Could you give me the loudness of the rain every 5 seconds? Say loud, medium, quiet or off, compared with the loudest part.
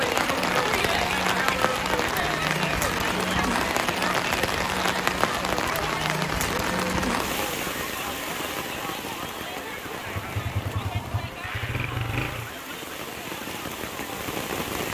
loud, loud, medium.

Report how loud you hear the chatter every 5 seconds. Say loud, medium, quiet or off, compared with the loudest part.
loud, medium, medium.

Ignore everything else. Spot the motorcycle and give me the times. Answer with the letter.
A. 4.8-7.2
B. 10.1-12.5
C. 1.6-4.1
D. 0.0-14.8
B.